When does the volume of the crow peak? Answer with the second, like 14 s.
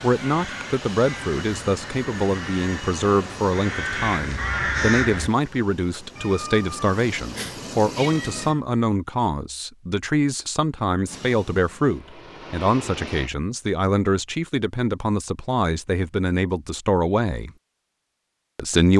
5 s.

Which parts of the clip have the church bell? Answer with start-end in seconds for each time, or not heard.
not heard.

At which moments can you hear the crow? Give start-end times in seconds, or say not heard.
0.1-5.3.